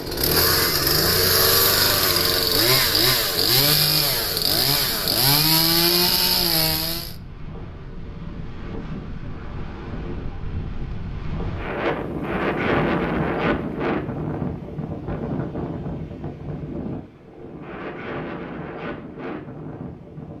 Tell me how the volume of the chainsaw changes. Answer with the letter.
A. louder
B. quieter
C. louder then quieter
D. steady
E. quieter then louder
D.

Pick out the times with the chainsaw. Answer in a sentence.
The chainsaw can be heard from 0.0 to 7.2 s.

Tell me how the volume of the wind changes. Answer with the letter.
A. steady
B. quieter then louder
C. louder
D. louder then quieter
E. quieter
D.